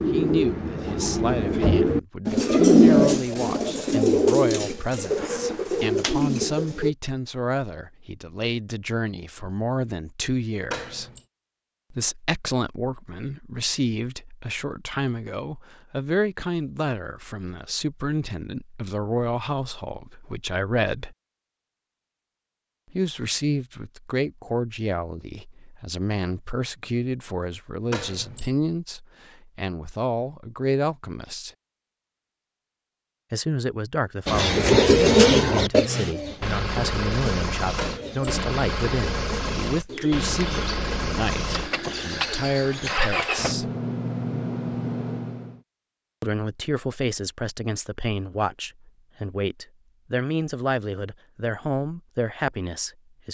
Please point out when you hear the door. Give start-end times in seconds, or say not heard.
10.7-11.2, 27.9-28.5, 37.8-38.3.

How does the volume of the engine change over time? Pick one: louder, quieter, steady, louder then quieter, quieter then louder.
steady.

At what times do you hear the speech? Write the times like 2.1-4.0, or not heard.
0.1-11.1, 11.9-21.1, 22.9-31.5, 33.3-43.7, 46.2-53.2.